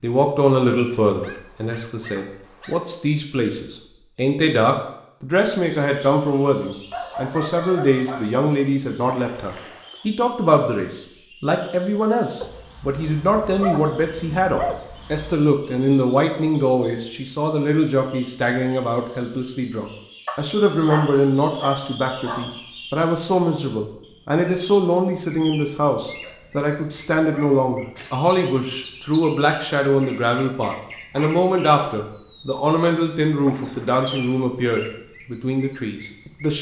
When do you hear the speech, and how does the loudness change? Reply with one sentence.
The speech can be heard from 0.0 to 36.5 s, at a steady volume.